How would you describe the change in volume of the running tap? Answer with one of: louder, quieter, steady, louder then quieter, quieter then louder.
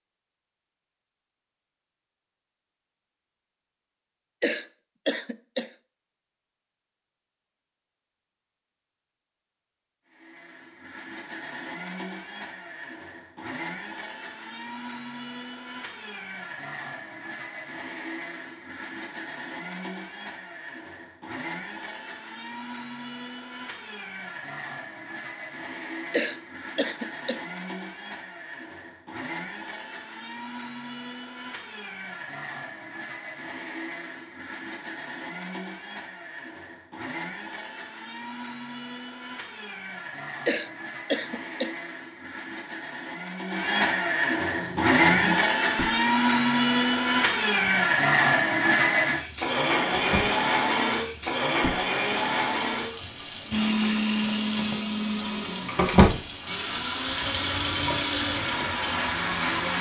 louder then quieter.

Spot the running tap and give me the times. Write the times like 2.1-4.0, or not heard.
44.4-59.7.